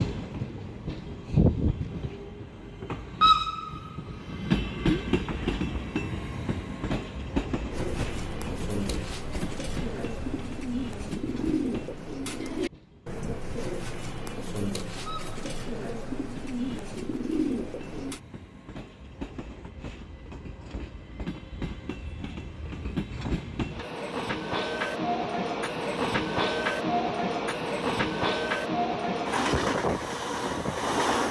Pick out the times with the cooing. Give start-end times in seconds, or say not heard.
7.7-18.2.